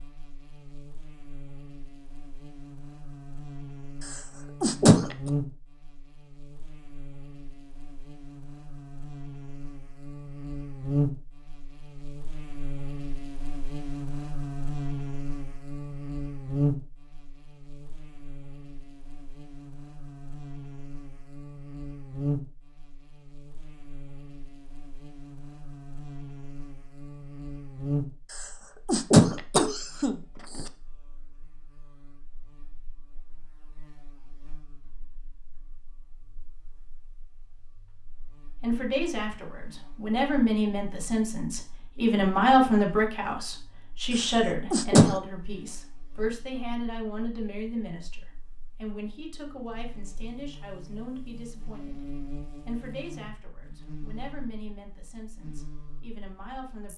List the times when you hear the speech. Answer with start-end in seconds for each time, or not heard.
38.6-52.0, 52.6-56.9.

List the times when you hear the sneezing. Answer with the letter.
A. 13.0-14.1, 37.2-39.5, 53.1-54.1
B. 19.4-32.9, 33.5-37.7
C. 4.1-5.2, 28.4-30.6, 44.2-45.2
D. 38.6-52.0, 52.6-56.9
C.